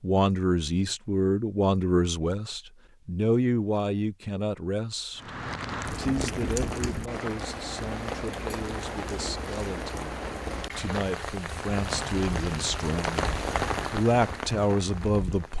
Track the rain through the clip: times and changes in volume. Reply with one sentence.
You can hear the rain from 5.2 to 15.5 s, at a steady volume.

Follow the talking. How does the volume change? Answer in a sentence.
The volume of the talking goes down, then up.